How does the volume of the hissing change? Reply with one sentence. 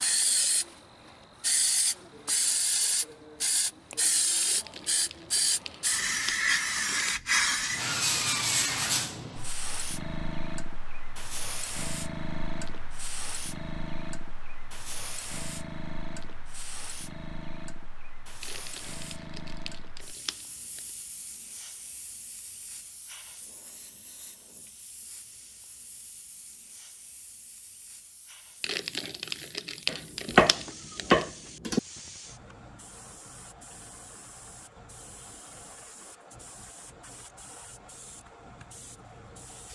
The volume of the hissing goes down.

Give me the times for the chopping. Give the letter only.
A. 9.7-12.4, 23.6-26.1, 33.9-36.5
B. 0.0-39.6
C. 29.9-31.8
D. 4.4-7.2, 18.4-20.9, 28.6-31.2
C.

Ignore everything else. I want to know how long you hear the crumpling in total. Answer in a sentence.
You can hear the crumpling for 8 seconds altogether.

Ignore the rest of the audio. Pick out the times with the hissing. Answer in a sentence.
You can hear the hissing from 0.0 to 39.6 s.